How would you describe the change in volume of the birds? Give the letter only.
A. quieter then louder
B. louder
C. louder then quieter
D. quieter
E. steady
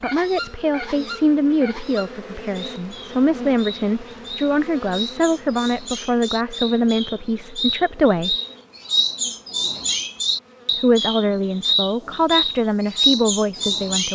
B.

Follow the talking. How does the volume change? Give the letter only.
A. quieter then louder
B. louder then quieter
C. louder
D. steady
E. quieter
D.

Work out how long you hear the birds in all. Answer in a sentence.
You can hear the birds for 14 seconds altogether.